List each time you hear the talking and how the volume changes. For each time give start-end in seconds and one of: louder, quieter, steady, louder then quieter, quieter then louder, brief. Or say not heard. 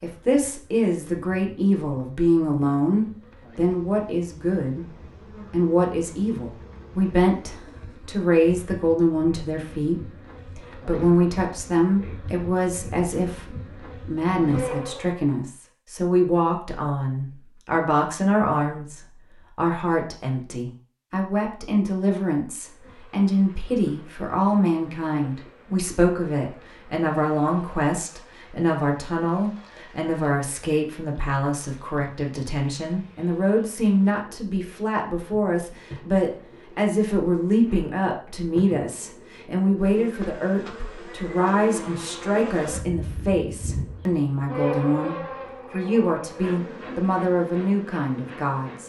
0.0-48.8 steady.